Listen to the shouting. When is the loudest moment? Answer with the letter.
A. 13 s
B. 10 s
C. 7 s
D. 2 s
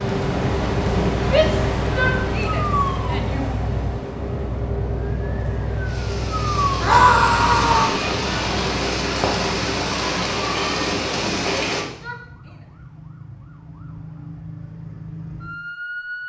C.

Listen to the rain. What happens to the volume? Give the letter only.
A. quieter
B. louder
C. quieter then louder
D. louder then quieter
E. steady
C.